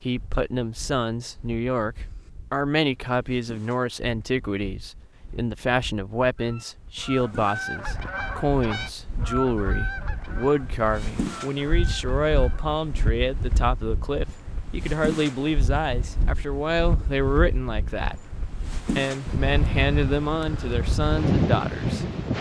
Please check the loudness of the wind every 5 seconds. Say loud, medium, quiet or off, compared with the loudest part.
quiet, quiet, medium, medium, loud.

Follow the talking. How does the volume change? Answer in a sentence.
The volume of the talking stays about the same.